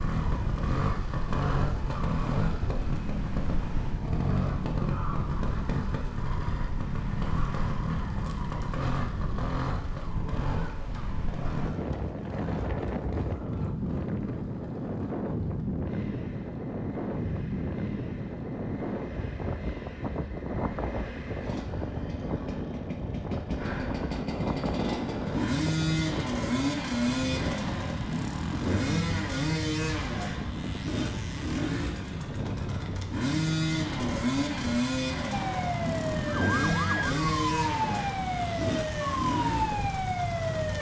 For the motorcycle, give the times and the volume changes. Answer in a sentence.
The motorcycle can be heard from 0.0 to 40.7 s, getting quieter then louder.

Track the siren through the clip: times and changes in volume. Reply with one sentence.
You can hear the siren from 35.3 to 40.7 s, at a steady volume.